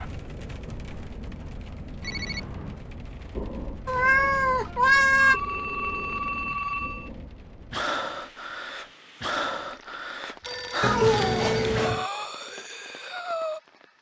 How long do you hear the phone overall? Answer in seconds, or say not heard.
4 s.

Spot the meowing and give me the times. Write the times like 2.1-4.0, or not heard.
3.9-5.4, 10.8-12.1.